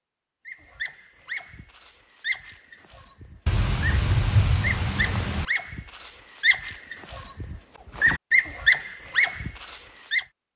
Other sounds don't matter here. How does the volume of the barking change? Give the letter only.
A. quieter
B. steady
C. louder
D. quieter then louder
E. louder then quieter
C.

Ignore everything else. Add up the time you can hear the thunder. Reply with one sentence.
The thunder can be heard for 2 seconds in total.